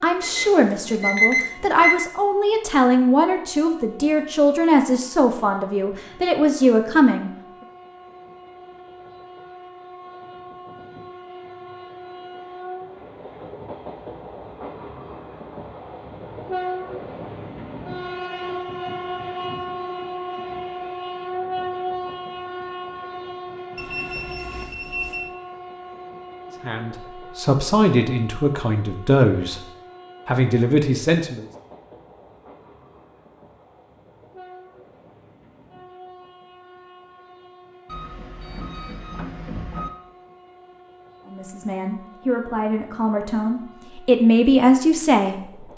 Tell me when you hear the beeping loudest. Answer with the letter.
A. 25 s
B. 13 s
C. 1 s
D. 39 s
C.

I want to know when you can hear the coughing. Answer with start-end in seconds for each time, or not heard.
not heard.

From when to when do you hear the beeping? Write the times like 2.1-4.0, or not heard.
0.2-2.0, 23.8-25.3, 37.9-39.9.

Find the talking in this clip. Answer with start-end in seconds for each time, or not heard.
0.0-7.3, 26.6-29.6, 30.2-31.4, 41.2-45.7.